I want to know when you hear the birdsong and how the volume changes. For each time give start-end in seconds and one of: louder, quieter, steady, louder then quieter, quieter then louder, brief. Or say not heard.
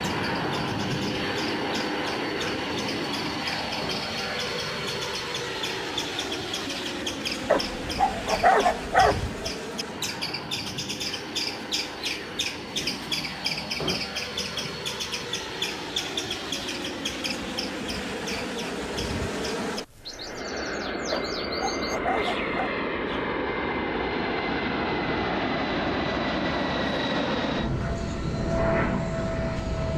0.0-23.3 louder then quieter.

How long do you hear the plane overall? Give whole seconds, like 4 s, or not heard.
30 s.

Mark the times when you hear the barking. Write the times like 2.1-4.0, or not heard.
7.5-9.3, 21.1-22.8.